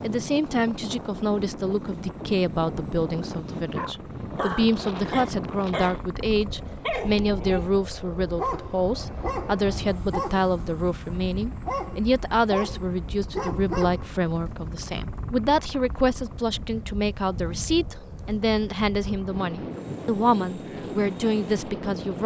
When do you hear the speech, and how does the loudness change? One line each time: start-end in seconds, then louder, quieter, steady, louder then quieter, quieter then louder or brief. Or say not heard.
0.0-22.2 steady.